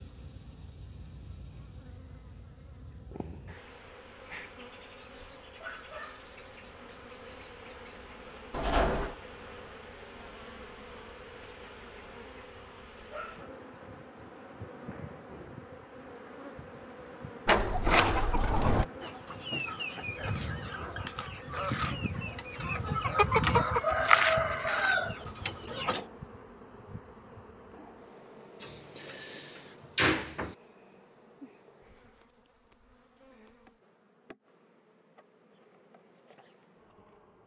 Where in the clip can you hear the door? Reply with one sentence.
You can hear the door from 8.5 to 9.2 s, from 17.4 to 18.9 s and from 28.6 to 30.6 s.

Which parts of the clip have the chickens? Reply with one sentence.
The chickens can be heard from 17.6 to 26.1 s.